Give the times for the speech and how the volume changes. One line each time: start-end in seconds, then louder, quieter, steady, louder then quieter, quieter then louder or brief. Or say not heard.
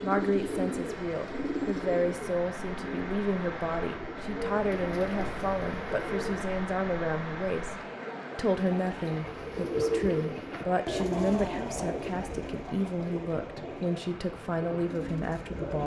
0.0-15.8 steady.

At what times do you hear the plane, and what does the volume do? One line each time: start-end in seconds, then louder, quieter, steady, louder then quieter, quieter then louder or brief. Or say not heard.
not heard.